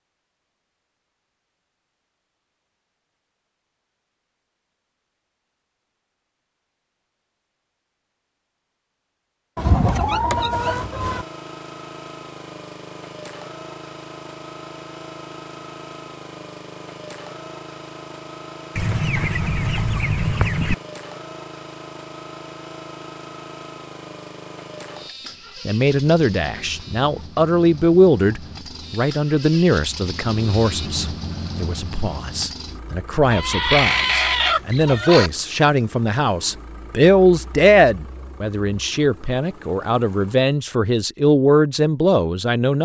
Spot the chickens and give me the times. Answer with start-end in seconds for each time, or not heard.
9.6-11.2, 18.8-20.8, 33.3-35.3.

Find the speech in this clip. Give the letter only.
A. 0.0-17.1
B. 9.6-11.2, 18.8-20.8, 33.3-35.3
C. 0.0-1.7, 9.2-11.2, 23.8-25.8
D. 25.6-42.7
D.